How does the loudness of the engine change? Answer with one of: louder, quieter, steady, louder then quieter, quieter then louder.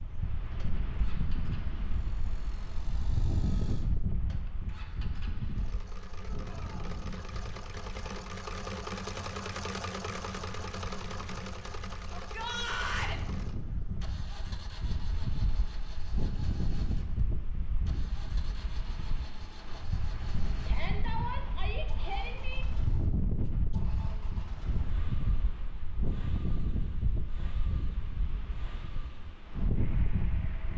louder then quieter.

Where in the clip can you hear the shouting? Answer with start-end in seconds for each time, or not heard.
6.3-6.8, 12.1-13.2, 20.6-22.6.